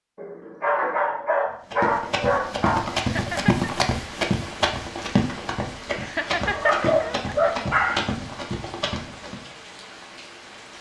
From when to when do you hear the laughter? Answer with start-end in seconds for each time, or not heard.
3.0-3.7, 6.0-7.5.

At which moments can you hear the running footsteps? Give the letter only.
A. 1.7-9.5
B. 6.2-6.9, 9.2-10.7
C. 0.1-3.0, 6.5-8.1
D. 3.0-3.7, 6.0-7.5
A.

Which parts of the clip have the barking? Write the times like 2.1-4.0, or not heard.
0.1-3.0, 6.5-8.1.